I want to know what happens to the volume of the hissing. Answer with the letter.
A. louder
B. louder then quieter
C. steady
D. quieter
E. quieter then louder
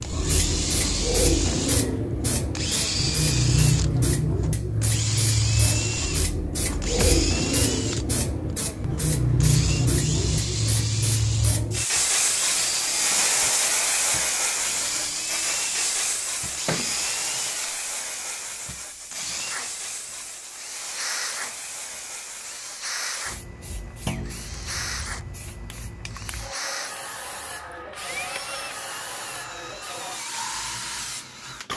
D.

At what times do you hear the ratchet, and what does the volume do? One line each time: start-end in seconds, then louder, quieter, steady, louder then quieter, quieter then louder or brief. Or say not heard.
not heard.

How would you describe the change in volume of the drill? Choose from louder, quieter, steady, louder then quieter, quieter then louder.
quieter.